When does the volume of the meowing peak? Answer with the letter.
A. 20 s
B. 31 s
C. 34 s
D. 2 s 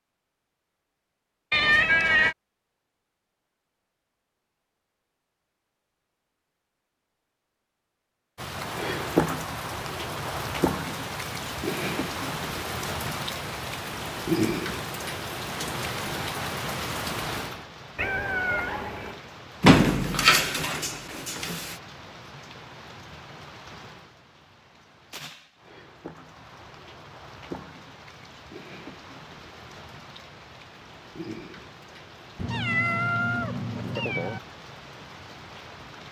D.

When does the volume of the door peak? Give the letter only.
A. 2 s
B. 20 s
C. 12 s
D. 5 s
B.